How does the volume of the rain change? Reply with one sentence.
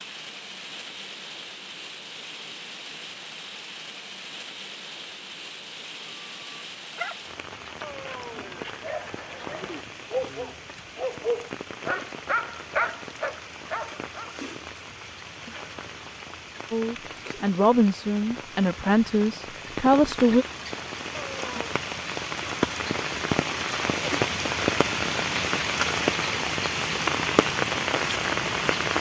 The volume of the rain goes up.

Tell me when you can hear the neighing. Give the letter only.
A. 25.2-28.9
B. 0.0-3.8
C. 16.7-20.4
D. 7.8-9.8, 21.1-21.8
D.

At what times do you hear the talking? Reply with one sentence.
You can hear the talking from 16.7 to 20.4 s.